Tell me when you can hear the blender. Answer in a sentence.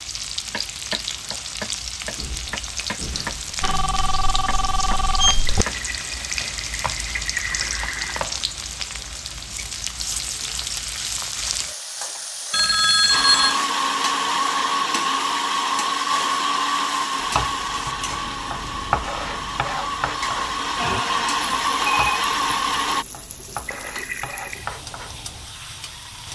The blender can be heard from 13.1 to 23.1 s.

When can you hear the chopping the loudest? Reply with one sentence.
The loudest moment of the chopping is at 19 seconds.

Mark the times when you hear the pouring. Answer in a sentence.
The pouring can be heard from 5.5 to 8.2 s and from 23.6 to 24.7 s.